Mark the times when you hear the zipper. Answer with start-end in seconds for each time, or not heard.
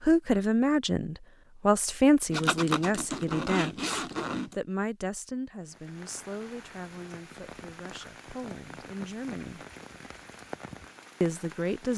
2.3-4.5.